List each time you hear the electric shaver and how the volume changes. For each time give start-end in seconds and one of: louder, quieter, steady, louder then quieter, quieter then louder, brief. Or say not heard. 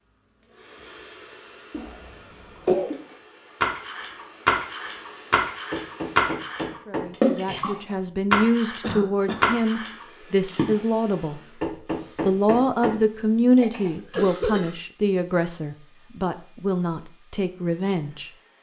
not heard.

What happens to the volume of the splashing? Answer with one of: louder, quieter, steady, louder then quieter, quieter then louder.
steady.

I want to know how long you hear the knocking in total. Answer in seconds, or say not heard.
3 s.